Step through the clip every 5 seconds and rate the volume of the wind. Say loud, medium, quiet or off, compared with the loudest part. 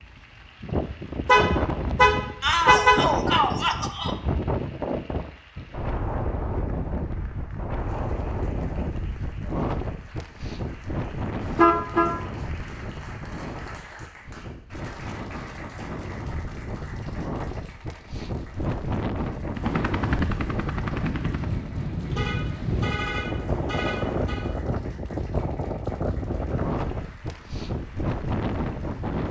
loud, loud, medium, loud, loud, loud.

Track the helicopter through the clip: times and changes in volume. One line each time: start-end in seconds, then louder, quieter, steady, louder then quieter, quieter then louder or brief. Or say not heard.
19.4-24.4 quieter then louder.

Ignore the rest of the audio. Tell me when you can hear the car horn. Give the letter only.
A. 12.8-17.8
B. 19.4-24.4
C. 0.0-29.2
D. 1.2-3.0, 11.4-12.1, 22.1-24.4
D.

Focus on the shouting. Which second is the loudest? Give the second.
3 s.